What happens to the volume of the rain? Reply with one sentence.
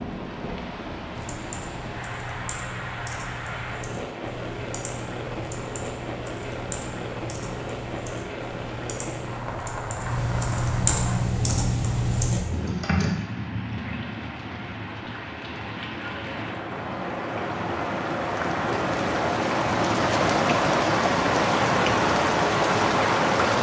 The volume of the rain goes up.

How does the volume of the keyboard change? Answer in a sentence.
The volume of the keyboard goes up.